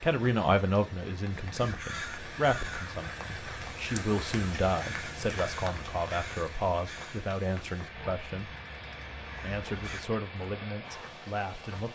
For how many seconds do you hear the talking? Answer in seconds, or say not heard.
11 s.